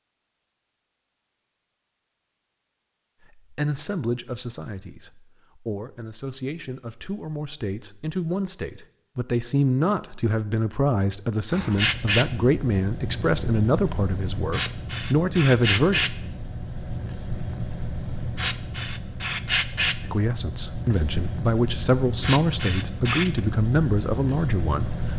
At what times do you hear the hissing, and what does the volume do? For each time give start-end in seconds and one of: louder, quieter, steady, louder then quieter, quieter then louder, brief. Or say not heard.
11.5-25.1 steady.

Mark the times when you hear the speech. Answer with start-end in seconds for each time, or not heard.
3.4-16.0, 20.0-25.1.